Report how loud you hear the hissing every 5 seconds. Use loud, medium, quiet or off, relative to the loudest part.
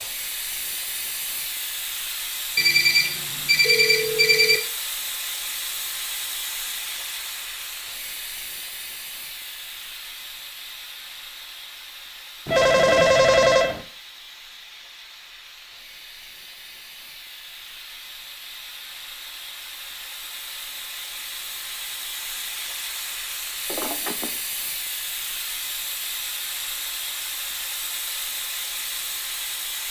loud, loud, medium, medium, loud, loud.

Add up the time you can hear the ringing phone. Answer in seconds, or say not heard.
4 s.